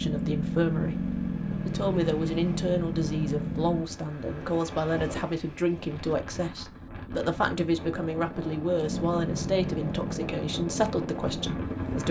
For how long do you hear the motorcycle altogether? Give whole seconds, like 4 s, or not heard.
7 s.